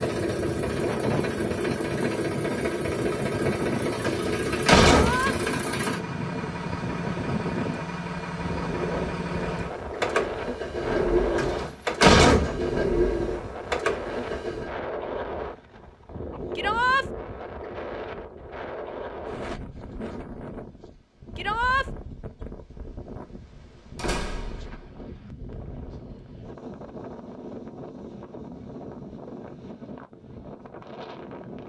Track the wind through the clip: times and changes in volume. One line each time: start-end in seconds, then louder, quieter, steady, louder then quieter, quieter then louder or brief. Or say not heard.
0.0-31.6 quieter.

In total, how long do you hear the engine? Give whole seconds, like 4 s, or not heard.
15 s.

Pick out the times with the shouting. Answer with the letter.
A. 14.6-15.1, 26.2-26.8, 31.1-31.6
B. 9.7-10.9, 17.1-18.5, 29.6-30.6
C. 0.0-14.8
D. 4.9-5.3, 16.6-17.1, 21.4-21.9
D.